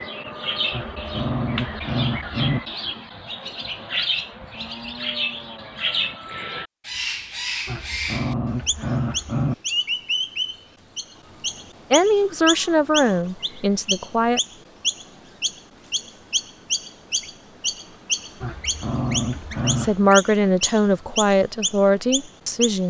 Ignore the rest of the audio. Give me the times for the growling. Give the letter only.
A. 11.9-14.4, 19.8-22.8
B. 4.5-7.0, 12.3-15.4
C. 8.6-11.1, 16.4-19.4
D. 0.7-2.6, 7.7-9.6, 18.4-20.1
D.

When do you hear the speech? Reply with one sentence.
The speech can be heard from 11.9 to 14.4 s and from 19.8 to 22.8 s.